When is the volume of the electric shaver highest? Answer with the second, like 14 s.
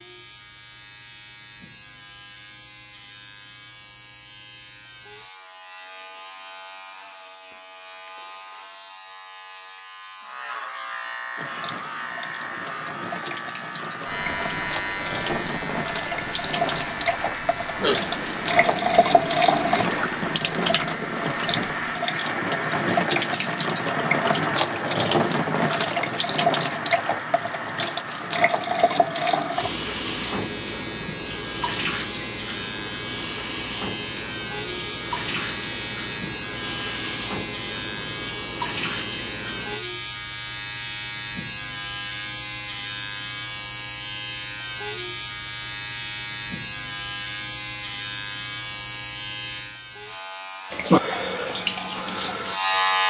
53 s.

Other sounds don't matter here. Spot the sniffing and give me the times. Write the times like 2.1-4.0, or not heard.
17.8-20.0.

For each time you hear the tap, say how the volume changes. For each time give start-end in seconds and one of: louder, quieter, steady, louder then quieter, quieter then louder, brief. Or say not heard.
11.3-39.8 louder then quieter
50.7-53.0 brief.